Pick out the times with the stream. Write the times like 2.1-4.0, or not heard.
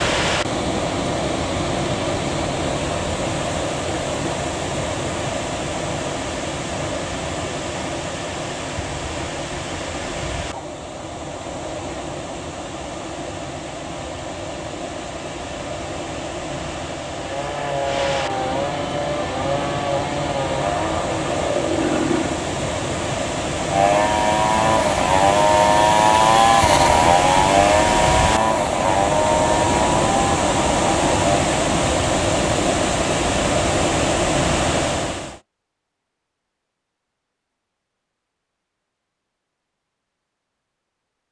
0.0-35.4.